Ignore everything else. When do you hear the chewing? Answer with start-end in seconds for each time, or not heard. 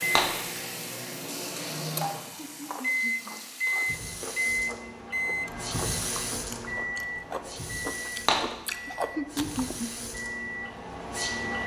1.9-9.8.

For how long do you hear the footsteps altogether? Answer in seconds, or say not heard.
not heard.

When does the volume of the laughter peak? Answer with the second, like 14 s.
9 s.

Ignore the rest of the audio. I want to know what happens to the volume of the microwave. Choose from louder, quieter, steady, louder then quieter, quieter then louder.
louder then quieter.